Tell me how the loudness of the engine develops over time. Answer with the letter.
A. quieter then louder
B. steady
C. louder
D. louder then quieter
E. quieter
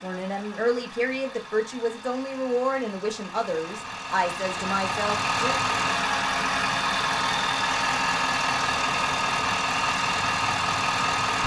C.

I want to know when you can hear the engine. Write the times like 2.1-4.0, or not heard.
0.0-11.4.